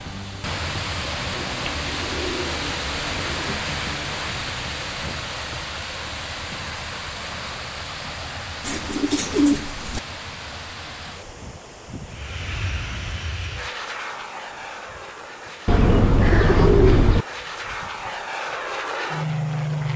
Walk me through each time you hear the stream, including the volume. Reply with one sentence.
You can hear the stream from 0.0 to 19.9 s, getting quieter.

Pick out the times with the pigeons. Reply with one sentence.
You can hear the pigeons from 1.4 to 3.5 s, from 8.6 to 10.0 s and from 15.7 to 17.2 s.